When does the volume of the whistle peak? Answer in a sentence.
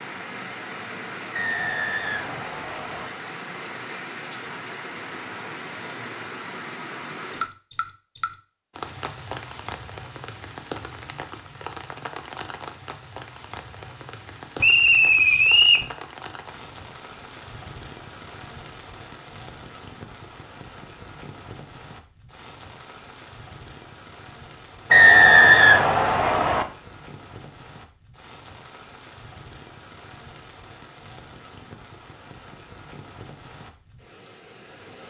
The volume of the whistle peaks at 25 seconds.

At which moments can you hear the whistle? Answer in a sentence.
The whistle can be heard from 1.4 to 3.1 s, from 14.6 to 15.8 s and from 24.9 to 26.6 s.